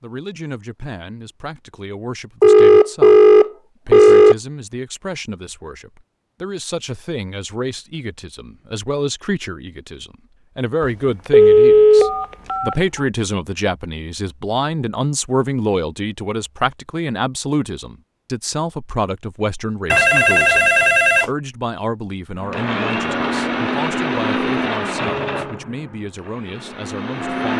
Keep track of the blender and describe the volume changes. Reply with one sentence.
The volume of the blender goes down.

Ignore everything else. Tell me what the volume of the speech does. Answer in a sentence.
The loudness of the speech goes up, then down.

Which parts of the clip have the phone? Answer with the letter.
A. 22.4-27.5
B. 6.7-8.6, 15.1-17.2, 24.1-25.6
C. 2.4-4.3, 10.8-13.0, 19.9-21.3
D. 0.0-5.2
C.